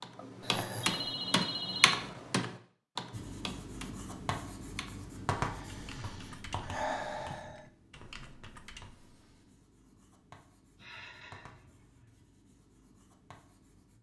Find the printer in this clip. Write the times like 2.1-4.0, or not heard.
not heard.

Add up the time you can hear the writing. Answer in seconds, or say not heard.
11 s.